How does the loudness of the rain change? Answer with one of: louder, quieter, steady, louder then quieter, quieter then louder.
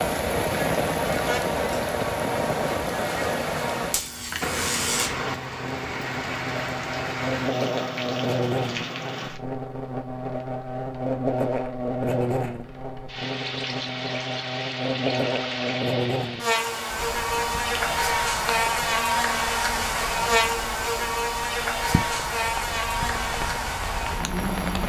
quieter.